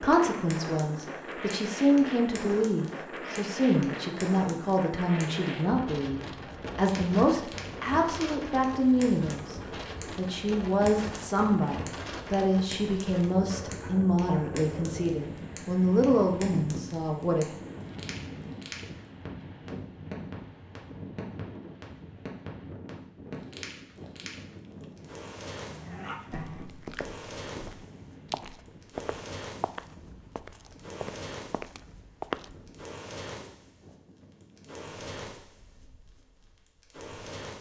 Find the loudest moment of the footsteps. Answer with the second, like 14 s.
32 s.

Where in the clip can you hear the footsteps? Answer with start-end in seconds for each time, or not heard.
26.3-32.9.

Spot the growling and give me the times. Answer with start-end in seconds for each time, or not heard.
25.6-26.7.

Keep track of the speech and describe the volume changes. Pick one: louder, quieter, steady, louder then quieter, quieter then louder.
steady.